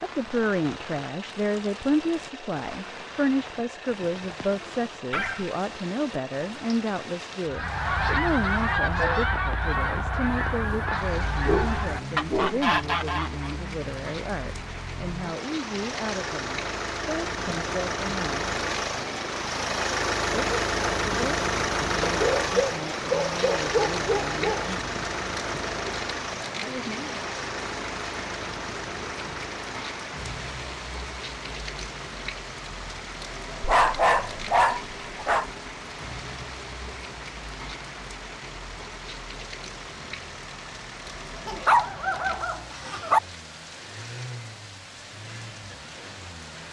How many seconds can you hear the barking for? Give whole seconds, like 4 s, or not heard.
8 s.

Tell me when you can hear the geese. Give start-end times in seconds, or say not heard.
7.5-13.6.